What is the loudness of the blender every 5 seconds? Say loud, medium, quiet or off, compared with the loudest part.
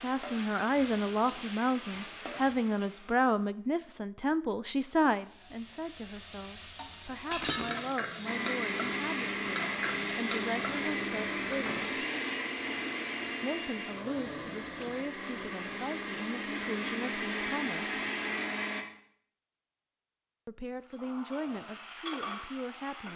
off, loud, loud, loud, off.